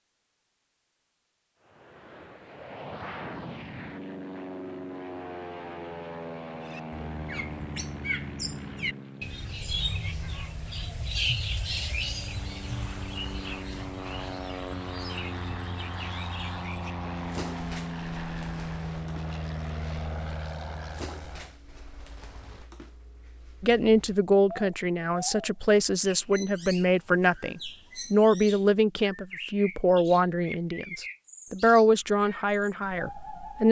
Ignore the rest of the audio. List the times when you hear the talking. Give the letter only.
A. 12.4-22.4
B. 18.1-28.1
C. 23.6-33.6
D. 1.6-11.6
C.